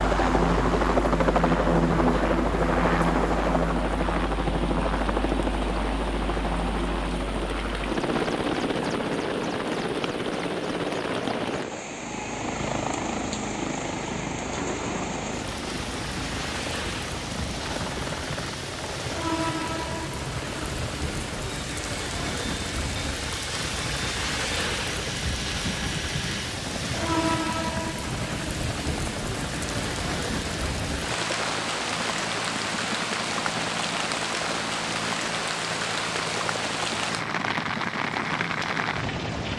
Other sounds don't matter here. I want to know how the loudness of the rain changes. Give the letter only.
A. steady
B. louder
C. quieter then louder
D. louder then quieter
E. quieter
B.